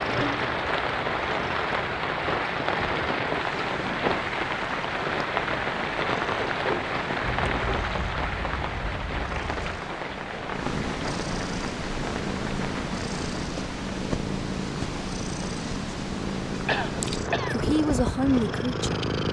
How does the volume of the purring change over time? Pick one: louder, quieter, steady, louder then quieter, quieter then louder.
louder.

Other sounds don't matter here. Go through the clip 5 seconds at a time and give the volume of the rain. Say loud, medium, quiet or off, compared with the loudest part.
loud, loud, medium, medium.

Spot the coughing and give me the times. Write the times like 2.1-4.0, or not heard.
0.1-0.5, 7.2-9.8, 16.6-17.6.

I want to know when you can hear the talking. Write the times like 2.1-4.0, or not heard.
17.5-19.1.